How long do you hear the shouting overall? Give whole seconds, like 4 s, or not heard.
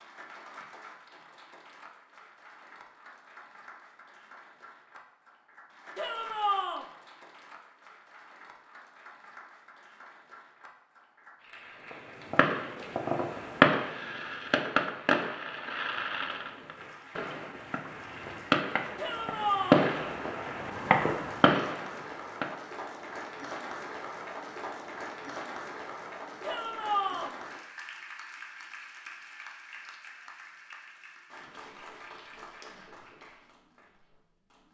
3 s.